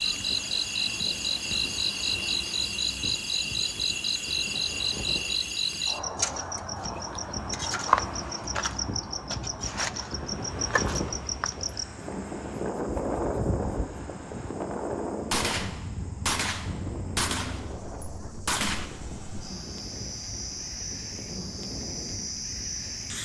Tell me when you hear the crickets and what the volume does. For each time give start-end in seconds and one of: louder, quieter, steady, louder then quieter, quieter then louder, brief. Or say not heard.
0.0-23.2 quieter then louder.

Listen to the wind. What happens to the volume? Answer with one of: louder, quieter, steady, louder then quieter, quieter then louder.
louder then quieter.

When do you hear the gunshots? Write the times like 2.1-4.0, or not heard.
15.3-18.9.